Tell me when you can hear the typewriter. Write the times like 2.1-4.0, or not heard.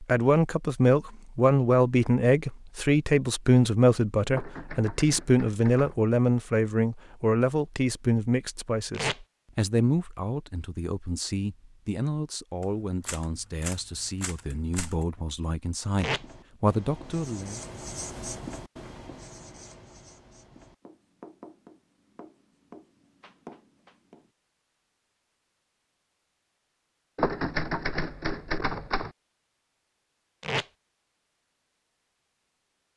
4.3-6.1, 12.6-15.1, 27.1-29.1.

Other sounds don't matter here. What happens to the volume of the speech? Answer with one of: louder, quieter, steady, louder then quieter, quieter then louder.
quieter.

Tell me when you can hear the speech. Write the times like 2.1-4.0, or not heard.
0.0-17.6.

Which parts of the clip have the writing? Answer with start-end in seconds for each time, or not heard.
15.8-24.3.